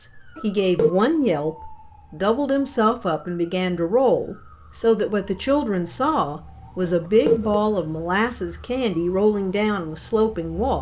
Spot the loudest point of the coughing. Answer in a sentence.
The volume of the coughing peaks at 7 seconds.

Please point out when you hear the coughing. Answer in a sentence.
You can hear the coughing from 0.3 to 1.0 s and from 6.8 to 7.7 s.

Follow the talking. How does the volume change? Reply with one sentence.
The loudness of the talking stays about the same.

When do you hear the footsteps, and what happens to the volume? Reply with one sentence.
You can't hear the footsteps here.